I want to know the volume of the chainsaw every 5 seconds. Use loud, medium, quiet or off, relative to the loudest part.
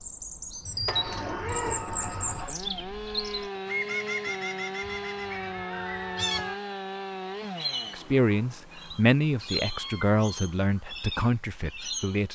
loud, loud, off.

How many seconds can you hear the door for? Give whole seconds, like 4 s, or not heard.
2 s.